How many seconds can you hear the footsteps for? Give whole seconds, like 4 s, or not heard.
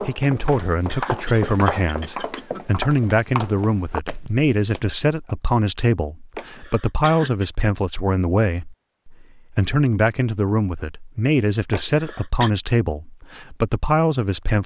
5 s.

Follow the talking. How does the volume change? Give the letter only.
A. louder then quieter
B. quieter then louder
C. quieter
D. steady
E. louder
D.